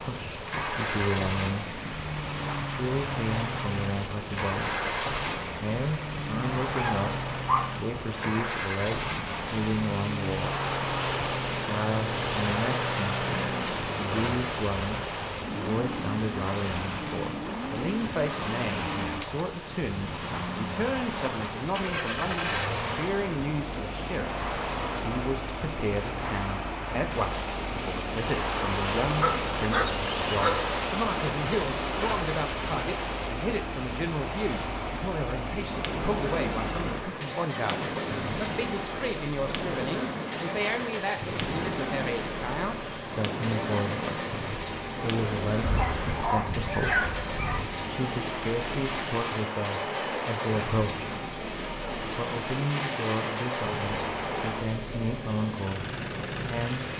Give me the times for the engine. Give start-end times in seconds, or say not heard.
0.2-56.9.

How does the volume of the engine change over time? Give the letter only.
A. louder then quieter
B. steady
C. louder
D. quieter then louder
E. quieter
B.